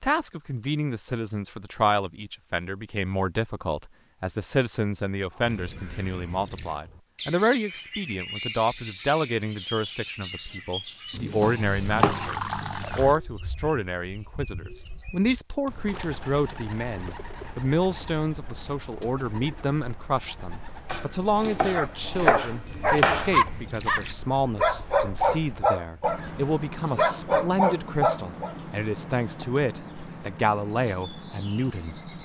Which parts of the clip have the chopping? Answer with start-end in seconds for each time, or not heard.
11.1-13.2, 20.9-23.5.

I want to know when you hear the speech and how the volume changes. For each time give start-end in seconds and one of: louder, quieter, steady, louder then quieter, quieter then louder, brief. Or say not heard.
0.0-31.9 steady.